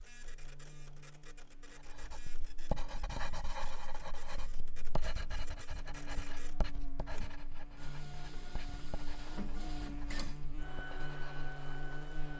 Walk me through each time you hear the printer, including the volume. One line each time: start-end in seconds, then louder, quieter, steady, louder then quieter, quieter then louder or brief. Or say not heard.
0.0-12.3 louder.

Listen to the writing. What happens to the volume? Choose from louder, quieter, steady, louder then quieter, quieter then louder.
quieter.